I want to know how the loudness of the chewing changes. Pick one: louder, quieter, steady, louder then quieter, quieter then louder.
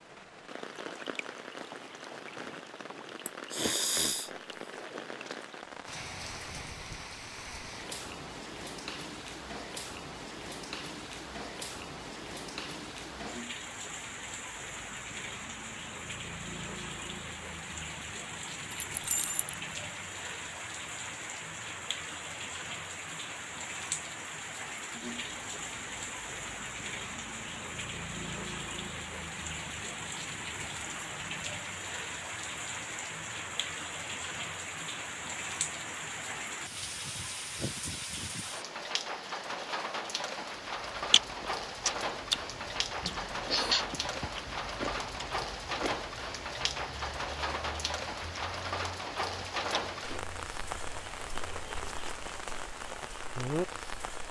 quieter.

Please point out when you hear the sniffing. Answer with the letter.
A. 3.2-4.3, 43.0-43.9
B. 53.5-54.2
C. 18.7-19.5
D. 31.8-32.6
A.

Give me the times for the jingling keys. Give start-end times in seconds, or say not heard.
18.7-19.5.